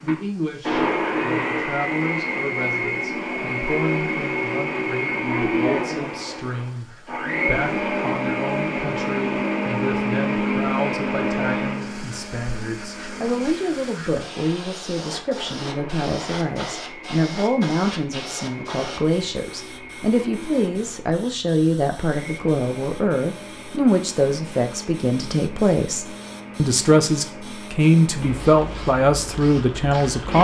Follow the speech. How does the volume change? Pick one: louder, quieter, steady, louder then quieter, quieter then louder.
louder.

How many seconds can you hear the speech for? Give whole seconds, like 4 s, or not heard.
30 s.